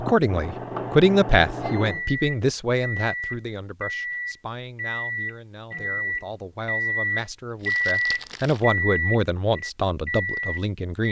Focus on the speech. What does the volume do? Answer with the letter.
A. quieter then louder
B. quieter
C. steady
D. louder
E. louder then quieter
A.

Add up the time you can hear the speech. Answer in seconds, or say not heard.
11 s.